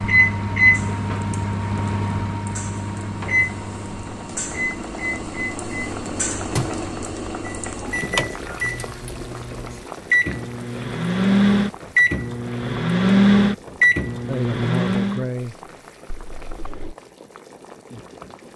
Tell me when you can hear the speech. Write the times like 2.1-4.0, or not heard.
14.2-15.7.